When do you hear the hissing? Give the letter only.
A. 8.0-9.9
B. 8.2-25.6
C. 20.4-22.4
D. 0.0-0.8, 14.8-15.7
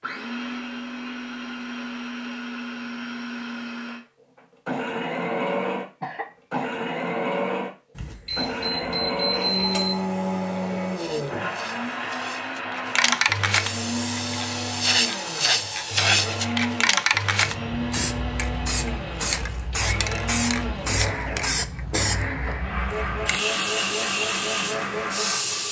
B.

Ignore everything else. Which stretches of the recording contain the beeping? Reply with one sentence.
You can hear the beeping from 8.0 to 9.9 s.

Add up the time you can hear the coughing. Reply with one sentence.
The coughing can be heard for 2 seconds in total.